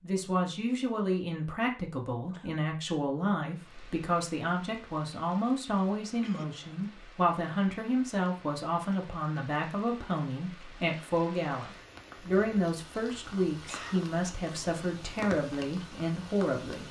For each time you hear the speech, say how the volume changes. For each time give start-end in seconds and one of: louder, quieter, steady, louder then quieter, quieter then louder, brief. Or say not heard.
0.0-16.8 steady.